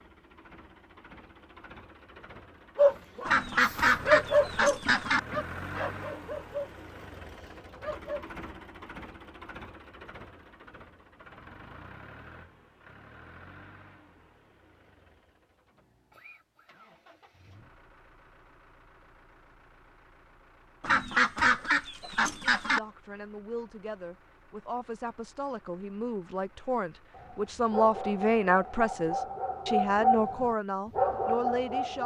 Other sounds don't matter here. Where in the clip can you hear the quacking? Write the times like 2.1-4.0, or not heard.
3.2-5.2, 20.8-22.8.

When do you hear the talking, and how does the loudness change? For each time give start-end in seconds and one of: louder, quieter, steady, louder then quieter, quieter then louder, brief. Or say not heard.
22.6-32.0 louder.